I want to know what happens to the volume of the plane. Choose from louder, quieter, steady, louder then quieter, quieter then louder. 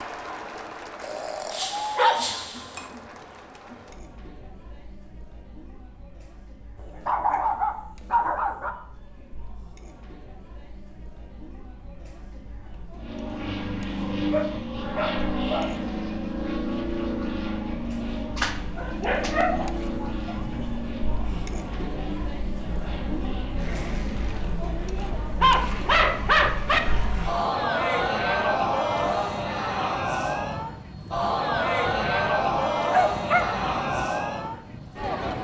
quieter.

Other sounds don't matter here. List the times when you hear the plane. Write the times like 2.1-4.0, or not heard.
12.9-35.3.